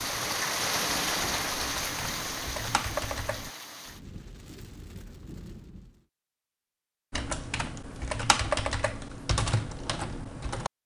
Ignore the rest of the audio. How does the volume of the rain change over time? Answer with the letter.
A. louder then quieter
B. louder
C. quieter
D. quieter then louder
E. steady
C.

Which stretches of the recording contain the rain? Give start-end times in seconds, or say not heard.
0.0-6.0.